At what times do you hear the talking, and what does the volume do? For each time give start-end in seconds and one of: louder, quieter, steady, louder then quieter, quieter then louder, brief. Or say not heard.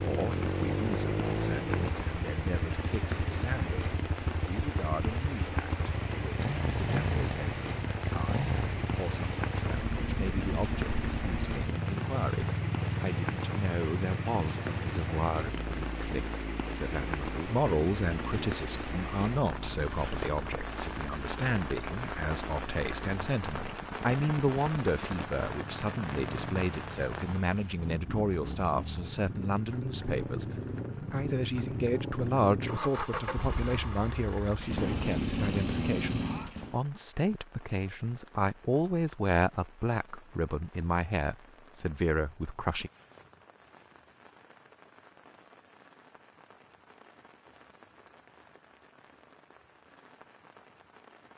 0.0-42.9 louder.